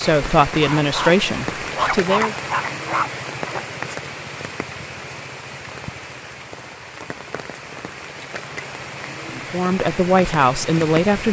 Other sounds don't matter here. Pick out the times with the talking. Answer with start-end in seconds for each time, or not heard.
0.0-2.4, 9.3-11.2.